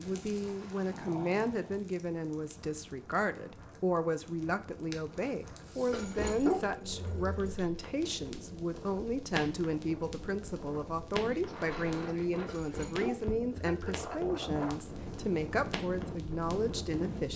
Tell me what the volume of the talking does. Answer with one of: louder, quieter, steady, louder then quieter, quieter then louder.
steady.